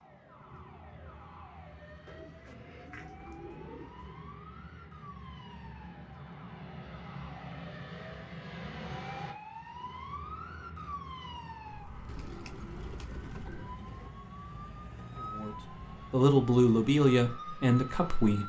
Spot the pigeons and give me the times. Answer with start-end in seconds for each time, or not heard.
2.0-4.2, 12.1-14.1.